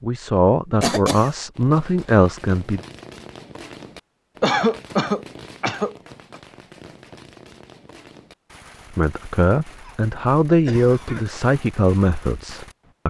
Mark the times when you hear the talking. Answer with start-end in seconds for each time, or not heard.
0.0-2.8, 8.9-13.0.